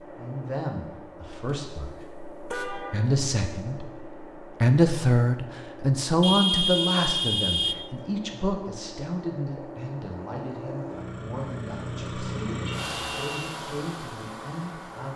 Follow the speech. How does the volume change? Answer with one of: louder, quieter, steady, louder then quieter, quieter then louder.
louder then quieter.